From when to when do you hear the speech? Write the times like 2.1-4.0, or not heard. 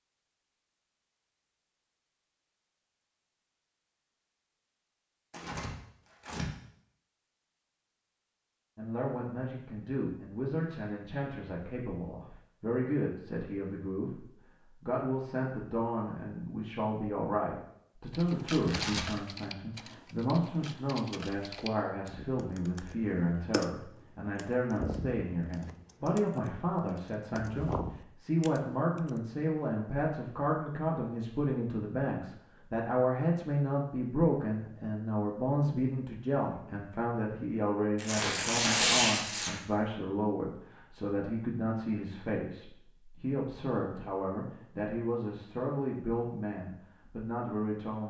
8.8-48.0.